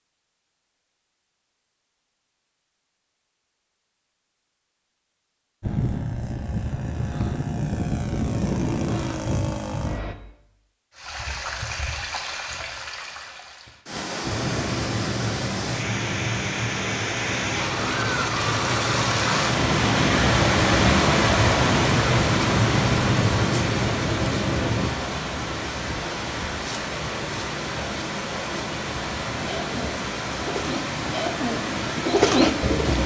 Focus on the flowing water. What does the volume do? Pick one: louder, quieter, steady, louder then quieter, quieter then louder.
louder then quieter.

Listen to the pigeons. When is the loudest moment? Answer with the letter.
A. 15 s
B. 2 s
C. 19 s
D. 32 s
D.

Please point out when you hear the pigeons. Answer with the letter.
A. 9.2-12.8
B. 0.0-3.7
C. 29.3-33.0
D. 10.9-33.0
C.